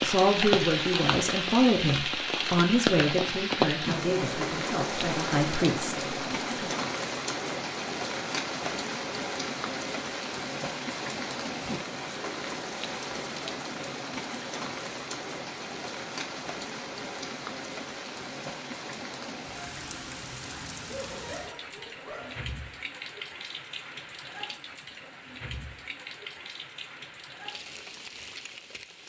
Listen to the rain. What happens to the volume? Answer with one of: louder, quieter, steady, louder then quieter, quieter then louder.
quieter.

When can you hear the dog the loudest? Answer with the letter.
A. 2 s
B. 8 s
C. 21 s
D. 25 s
C.